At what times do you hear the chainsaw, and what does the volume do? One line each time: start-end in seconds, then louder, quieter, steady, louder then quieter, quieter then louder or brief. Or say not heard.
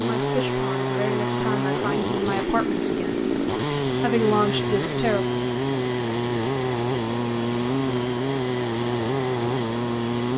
0.0-10.3 steady.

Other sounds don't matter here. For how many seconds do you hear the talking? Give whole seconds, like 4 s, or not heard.
4 s.